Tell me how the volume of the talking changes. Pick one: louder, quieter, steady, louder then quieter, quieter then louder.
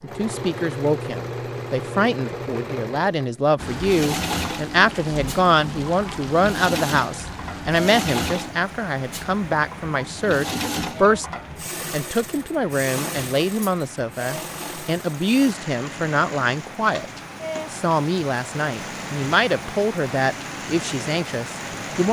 steady.